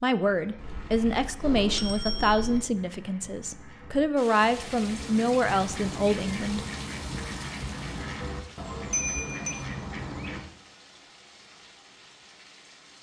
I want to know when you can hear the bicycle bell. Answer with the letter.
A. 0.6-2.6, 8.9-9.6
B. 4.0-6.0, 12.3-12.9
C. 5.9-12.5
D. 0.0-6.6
A.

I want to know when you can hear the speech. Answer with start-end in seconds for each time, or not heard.
0.0-6.6.